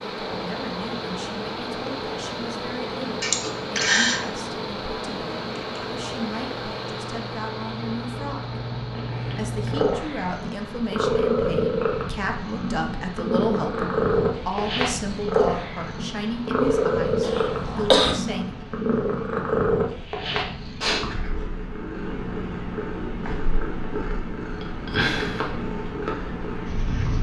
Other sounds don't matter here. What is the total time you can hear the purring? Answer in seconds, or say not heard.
27 s.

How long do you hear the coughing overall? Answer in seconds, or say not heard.
2 s.